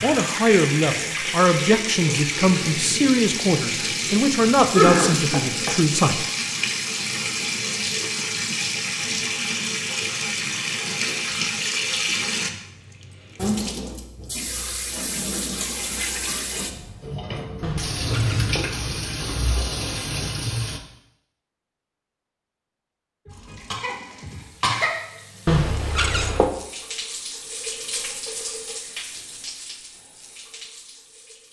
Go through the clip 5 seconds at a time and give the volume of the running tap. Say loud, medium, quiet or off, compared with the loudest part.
loud, loud, loud, loud, medium, medium, quiet.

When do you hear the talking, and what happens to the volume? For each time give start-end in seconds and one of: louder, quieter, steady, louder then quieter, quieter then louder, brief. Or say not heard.
0.0-6.2 steady.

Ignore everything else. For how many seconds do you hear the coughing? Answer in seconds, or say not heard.
2 s.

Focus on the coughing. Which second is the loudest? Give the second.
5 s.